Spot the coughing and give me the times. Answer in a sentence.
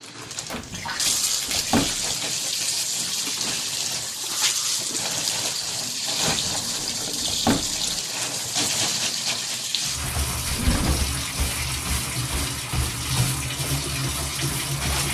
You can't hear the coughing here.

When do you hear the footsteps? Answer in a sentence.
You can't hear the footsteps here.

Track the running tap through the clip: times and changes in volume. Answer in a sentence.
The running tap can be heard from 0.0 to 15.0 s, at a steady volume.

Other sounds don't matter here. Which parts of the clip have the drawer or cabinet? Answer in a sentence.
The drawer or cabinet can be heard from 0.5 to 2.1 s, from 6.2 to 8.0 s and from 10.4 to 11.1 s.